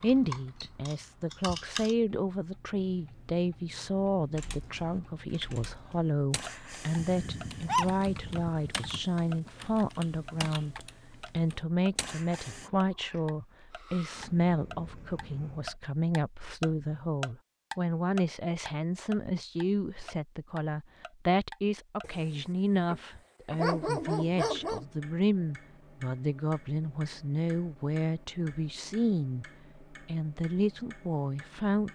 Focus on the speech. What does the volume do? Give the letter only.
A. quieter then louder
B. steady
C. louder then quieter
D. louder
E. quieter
B.